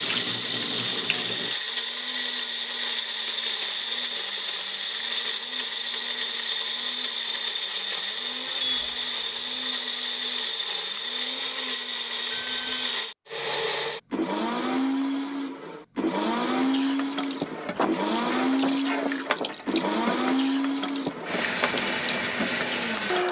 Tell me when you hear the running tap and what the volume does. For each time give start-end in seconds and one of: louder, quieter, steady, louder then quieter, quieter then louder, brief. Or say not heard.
0.0-1.6 brief
16.6-23.2 steady.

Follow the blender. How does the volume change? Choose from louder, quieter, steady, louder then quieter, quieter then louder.
steady.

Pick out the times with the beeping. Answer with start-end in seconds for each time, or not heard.
8.6-9.5, 12.3-12.9.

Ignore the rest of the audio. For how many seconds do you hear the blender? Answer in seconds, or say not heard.
23 s.